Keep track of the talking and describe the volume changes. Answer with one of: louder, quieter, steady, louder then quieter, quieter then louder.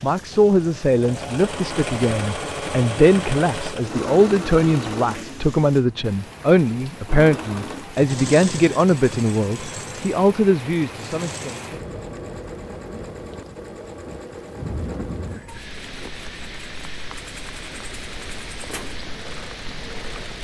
steady.